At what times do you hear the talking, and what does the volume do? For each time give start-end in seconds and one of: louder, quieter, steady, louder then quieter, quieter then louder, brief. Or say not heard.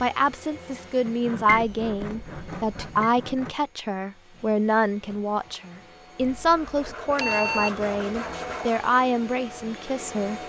0.0-10.4 steady.